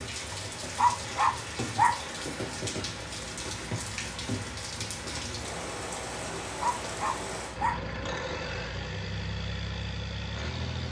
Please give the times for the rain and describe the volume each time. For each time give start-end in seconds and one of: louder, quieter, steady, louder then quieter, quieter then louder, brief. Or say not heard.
0.0-7.5 steady.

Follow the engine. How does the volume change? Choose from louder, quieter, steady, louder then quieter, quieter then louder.
louder.